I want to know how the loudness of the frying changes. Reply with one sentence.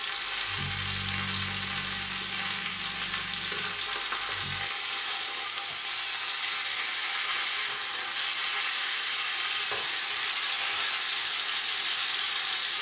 The volume of the frying stays about the same.